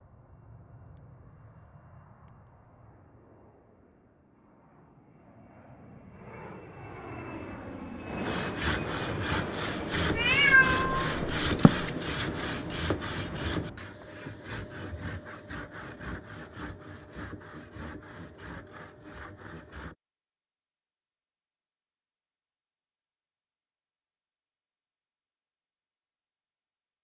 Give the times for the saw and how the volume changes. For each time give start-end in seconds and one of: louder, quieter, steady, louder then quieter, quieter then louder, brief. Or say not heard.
8.2-19.9 quieter.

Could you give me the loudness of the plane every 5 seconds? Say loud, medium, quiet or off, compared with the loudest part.
quiet, loud, loud, off, off, off.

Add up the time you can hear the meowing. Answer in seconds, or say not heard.
2 s.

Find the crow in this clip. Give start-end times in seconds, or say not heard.
not heard.